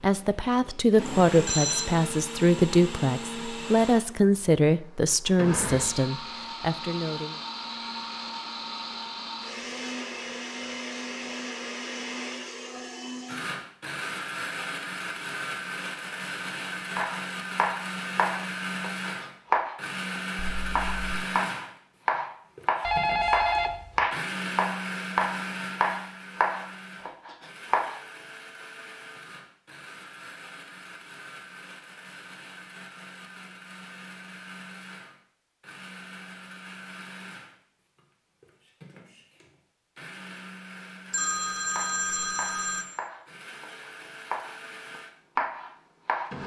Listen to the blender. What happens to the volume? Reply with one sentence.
The volume of the blender goes down.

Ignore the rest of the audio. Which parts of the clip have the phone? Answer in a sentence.
You can hear the phone from 1.3 to 1.9 s, from 22.8 to 24.1 s and from 41.1 to 42.9 s.